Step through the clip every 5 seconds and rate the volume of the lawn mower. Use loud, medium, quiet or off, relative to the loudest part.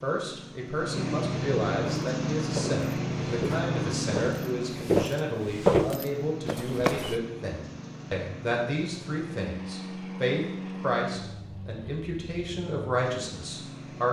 loud, medium, medium.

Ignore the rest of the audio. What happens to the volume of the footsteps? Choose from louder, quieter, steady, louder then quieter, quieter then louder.
louder then quieter.